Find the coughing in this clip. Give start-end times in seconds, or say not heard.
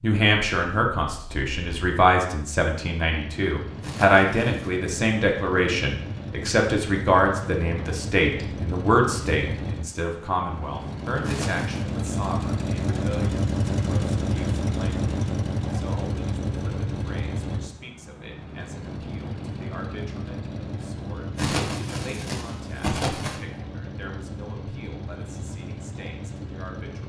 3.8-4.8, 11.2-11.8, 21.4-23.4.